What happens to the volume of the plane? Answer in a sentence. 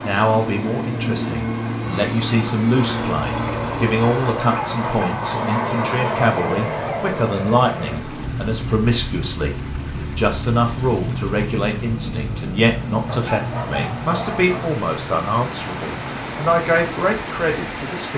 The volume of the plane goes down.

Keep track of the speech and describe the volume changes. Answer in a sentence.
The volume of the speech stays about the same.